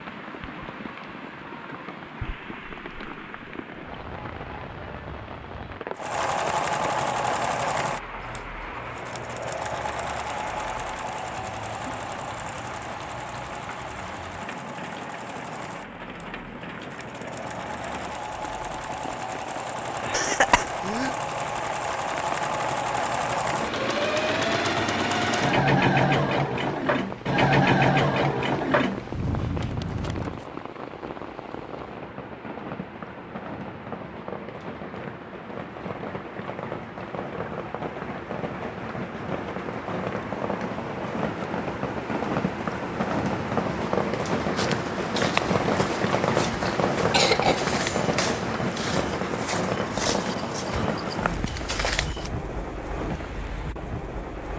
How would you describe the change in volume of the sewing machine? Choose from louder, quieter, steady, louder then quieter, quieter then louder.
quieter then louder.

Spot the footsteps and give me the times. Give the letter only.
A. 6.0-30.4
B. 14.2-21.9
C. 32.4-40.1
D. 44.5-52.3
D.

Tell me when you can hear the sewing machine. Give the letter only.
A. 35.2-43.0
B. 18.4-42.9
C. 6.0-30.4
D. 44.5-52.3
C.